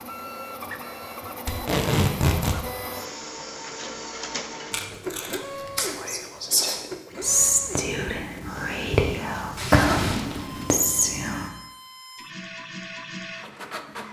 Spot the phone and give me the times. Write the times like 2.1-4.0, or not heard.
not heard.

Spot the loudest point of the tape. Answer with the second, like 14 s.
2 s.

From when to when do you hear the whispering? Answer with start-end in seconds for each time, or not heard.
5.8-11.5.